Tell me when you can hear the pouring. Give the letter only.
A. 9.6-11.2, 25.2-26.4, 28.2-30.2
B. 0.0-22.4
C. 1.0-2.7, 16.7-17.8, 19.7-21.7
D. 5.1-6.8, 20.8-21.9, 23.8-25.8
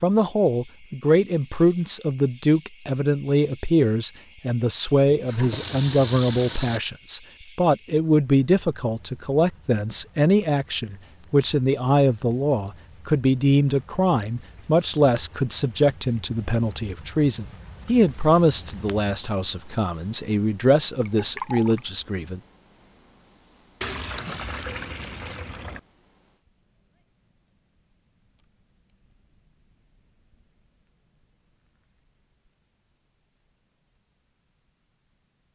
D.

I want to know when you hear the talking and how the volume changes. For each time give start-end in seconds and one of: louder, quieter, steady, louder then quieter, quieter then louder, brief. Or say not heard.
0.0-22.4 steady.